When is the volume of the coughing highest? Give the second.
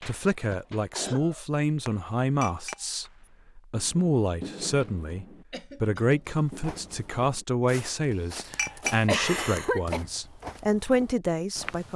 9 s.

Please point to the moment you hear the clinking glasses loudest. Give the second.
9 s.